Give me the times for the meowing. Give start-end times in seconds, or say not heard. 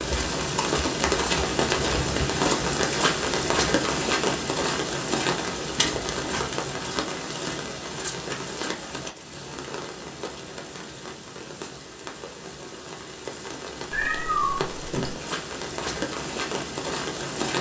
13.9-15.1.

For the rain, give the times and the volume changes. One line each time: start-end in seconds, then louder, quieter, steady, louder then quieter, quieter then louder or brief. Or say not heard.
0.0-17.5 quieter then louder.